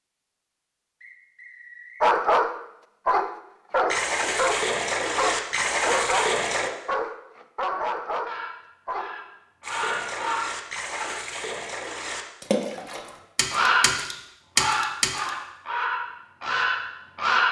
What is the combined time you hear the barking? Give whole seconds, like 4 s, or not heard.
7 s.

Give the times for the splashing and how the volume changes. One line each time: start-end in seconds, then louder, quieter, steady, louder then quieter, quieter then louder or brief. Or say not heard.
3.9-6.7 brief
9.6-15.3 louder.